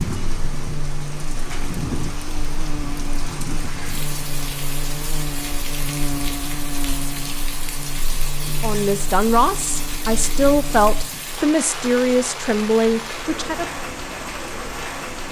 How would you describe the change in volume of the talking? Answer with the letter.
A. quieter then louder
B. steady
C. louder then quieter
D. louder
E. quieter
B.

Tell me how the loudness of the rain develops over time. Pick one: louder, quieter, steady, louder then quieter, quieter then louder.
steady.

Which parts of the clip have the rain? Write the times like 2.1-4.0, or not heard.
0.0-15.2.